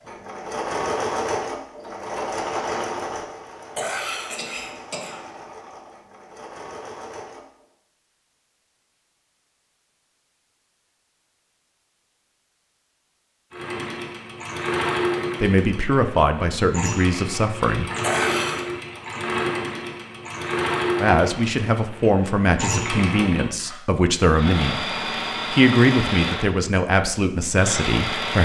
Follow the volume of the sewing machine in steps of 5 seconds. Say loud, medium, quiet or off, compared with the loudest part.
loud, quiet, loud, loud, loud, loud.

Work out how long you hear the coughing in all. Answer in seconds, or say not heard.
2 s.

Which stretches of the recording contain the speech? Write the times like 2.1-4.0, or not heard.
15.4-17.9, 20.9-28.4.